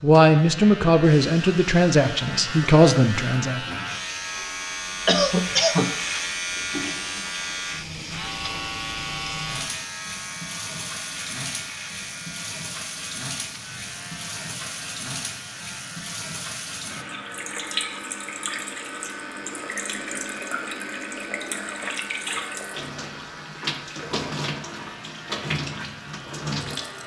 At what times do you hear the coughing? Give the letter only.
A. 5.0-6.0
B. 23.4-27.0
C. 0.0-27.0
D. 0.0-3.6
A.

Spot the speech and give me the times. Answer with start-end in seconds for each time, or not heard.
0.0-3.6.